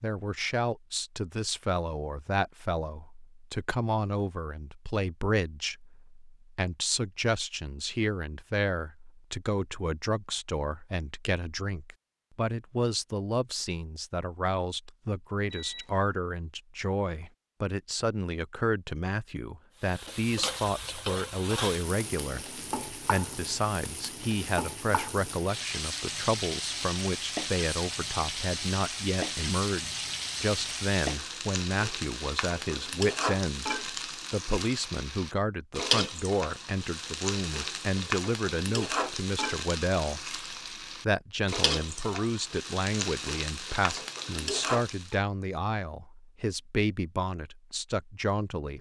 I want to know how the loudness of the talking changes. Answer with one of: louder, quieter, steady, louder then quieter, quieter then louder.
steady.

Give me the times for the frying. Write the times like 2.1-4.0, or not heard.
19.8-45.2.